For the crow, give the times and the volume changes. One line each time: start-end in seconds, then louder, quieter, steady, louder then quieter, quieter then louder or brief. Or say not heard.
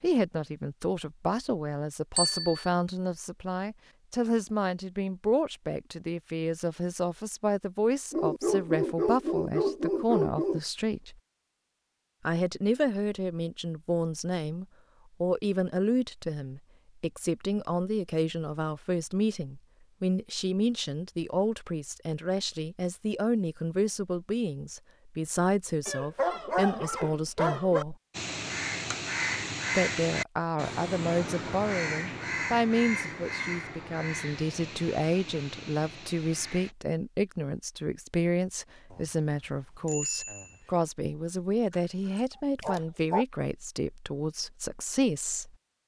28.1-36.8 quieter.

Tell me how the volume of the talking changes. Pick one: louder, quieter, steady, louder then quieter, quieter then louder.
steady.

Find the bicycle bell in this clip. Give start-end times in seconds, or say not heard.
2.1-2.7, 38.9-40.7.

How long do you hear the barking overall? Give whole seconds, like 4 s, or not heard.
6 s.